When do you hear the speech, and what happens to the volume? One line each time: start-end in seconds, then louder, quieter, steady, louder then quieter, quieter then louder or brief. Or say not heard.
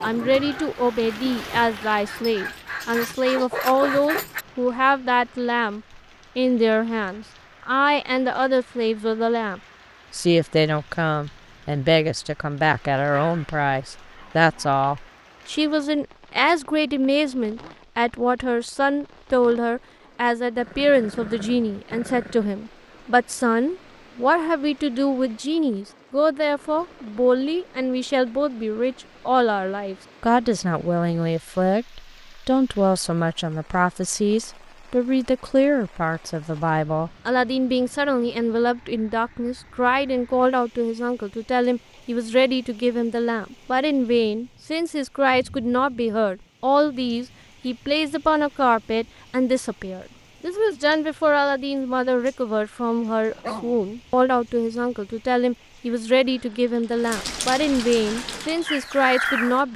0.0-59.7 steady.